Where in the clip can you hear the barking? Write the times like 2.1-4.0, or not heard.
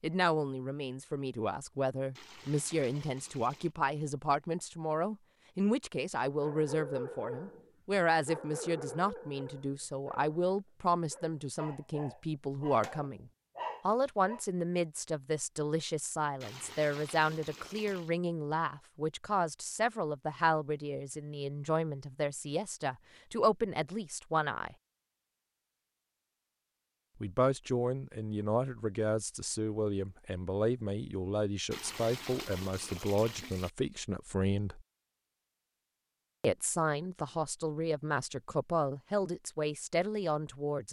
6.4-14.4.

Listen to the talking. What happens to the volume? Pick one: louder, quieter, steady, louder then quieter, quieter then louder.
steady.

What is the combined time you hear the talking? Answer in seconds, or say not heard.
37 s.